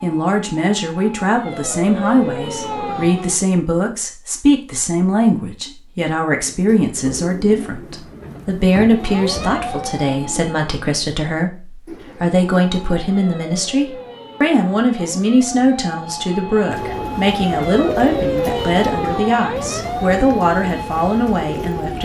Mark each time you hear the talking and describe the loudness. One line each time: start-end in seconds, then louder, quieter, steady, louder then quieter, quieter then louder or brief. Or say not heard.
0.0-21.9 steady.